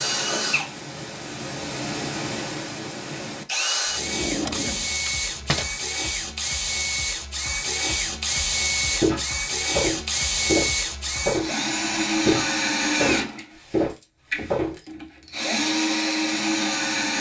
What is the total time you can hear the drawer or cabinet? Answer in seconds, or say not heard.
2 s.